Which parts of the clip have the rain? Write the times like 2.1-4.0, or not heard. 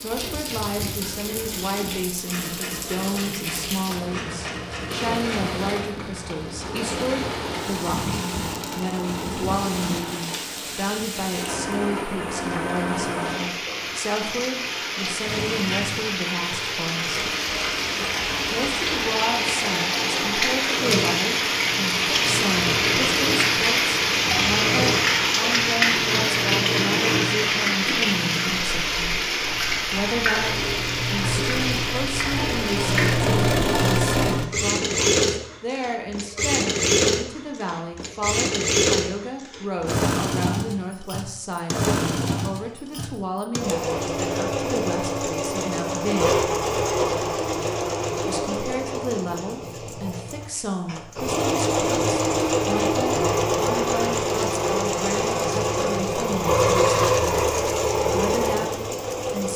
0.0-33.5.